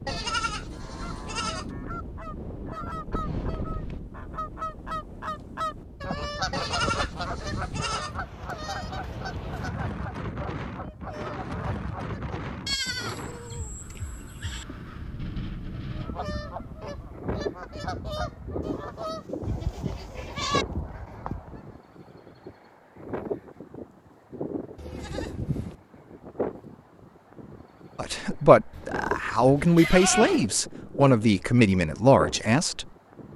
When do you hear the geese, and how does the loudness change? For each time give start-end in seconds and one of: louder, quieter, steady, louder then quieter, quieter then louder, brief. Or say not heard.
0.7-12.3 louder then quieter
15.8-21.8 steady.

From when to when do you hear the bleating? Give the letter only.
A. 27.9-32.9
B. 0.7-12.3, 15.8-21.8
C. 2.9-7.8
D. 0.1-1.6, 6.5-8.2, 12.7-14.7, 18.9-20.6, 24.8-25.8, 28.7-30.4
D.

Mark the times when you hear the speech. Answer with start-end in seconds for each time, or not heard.
27.9-32.9.